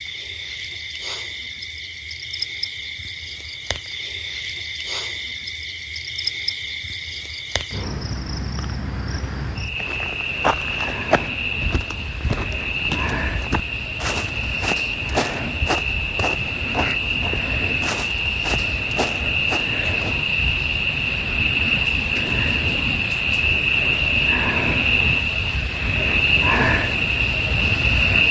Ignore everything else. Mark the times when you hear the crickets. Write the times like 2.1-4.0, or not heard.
0.0-28.2.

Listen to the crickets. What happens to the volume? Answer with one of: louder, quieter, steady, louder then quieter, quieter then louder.
louder.